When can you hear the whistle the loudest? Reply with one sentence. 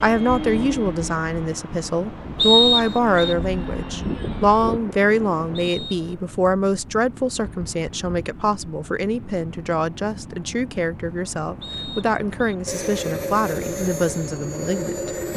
The loudest moment of the whistle is at 3 seconds.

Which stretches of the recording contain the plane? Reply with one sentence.
You can hear the plane from 0.0 to 4.8 s and from 12.7 to 15.3 s.